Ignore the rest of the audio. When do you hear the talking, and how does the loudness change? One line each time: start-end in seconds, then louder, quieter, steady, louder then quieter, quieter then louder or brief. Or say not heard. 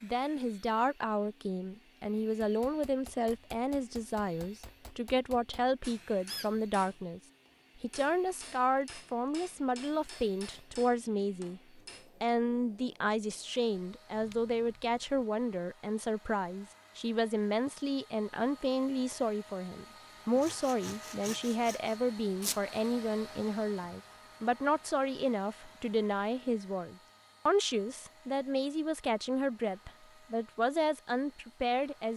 0.0-7.2 steady
7.8-32.1 steady.